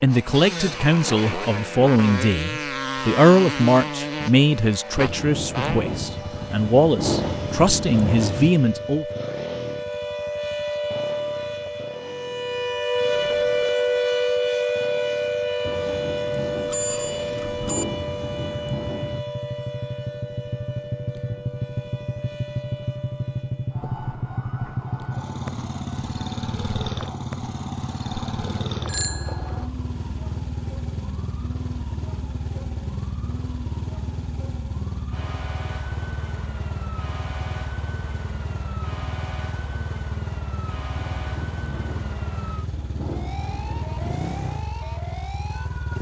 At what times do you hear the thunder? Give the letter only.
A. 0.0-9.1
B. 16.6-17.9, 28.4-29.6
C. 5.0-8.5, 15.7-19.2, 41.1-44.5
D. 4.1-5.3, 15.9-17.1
C.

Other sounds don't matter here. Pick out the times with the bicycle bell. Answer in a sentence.
You can hear the bicycle bell from 16.6 to 17.9 s and from 28.4 to 29.6 s.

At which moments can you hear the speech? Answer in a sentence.
The speech can be heard from 0.0 to 9.1 s.